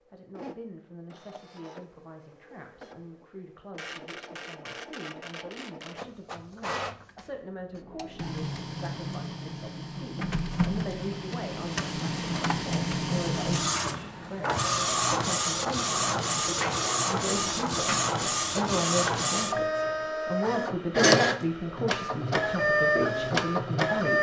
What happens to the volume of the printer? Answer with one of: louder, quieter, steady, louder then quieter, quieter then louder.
louder.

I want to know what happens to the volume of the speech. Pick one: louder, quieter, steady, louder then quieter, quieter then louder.
louder.